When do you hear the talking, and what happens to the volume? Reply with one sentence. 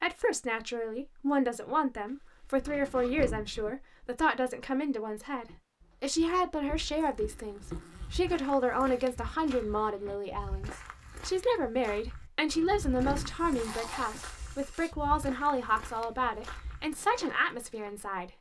The talking can be heard from 0.0 to 18.3 s, at a steady volume.